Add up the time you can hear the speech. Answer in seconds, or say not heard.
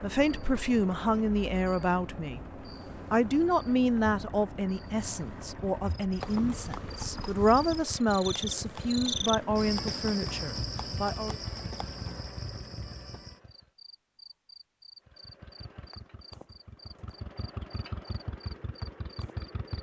11 s.